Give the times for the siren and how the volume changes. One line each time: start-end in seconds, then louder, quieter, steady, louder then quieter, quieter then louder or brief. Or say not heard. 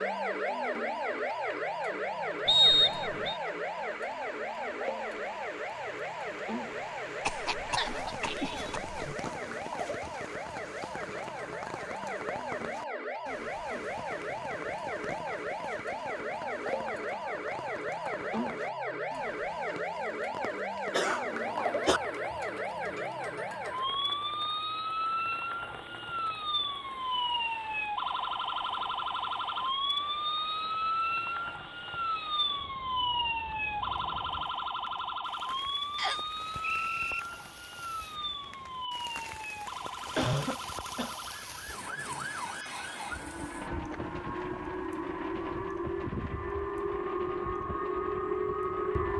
0.0-49.1 steady.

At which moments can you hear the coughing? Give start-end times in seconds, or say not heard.
7.2-9.2, 20.9-22.0, 40.1-41.2.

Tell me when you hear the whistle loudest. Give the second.
3 s.